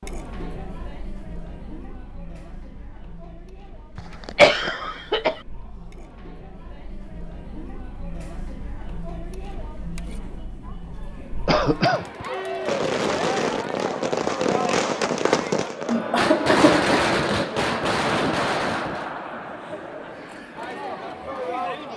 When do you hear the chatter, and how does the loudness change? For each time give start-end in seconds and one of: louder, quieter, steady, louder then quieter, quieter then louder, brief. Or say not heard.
0.0-21.9 louder.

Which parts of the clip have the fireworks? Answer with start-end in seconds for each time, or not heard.
12.1-19.1.